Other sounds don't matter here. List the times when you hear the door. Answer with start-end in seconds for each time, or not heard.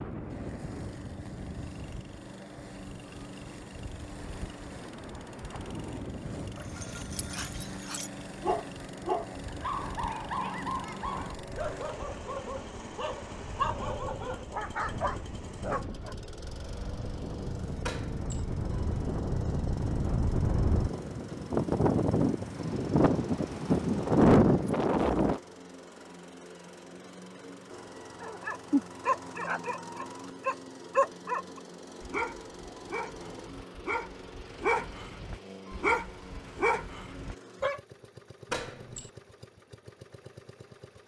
17.8-18.4, 38.5-39.1.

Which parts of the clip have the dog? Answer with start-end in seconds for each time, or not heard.
6.5-16.1, 28.2-37.8.